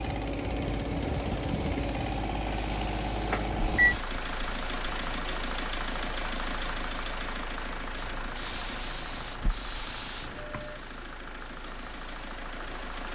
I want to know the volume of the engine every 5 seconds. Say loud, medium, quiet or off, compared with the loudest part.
loud, loud, medium.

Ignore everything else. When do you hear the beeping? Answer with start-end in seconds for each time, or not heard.
3.3-4.0, 10.2-10.8.